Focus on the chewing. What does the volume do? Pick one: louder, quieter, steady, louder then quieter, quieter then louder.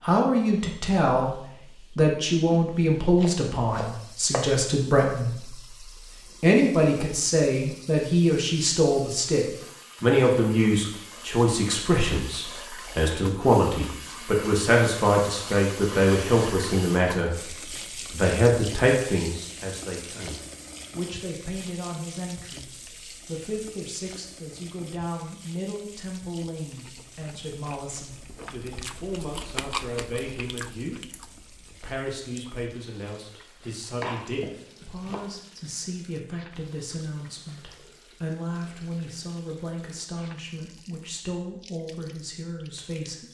louder then quieter.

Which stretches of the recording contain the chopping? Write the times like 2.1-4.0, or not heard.
3.2-4.5, 33.9-35.3.